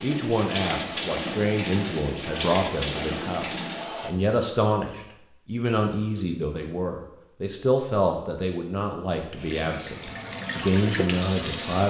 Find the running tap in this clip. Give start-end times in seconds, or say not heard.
0.0-4.1, 9.3-11.8.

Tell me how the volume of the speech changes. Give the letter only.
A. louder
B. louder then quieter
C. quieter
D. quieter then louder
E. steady
E.